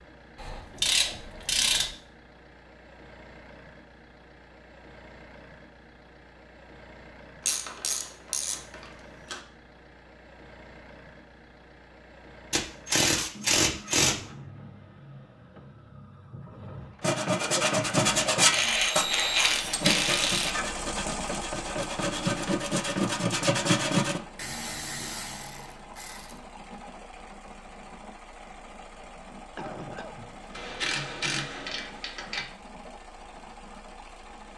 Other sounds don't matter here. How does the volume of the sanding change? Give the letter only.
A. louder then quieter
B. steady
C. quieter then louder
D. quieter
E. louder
C.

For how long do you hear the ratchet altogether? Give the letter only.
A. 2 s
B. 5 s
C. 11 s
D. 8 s
C.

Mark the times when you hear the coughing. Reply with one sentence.
You can hear the coughing from 29.6 to 30.6 s.